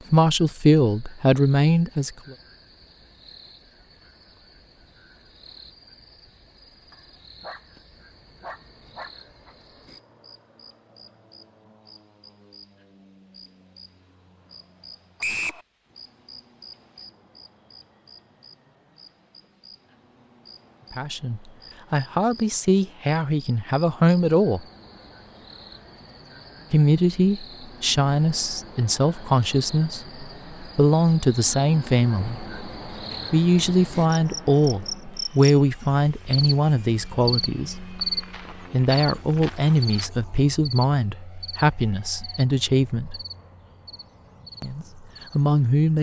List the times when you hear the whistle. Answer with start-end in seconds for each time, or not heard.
15.2-15.6.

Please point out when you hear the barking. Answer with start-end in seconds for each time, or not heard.
6.9-9.6.